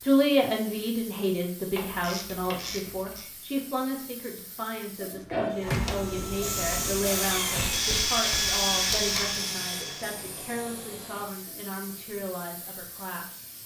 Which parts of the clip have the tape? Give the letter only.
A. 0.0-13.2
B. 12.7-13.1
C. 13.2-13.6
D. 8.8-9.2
D.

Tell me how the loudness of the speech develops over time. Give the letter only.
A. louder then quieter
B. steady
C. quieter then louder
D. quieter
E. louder
D.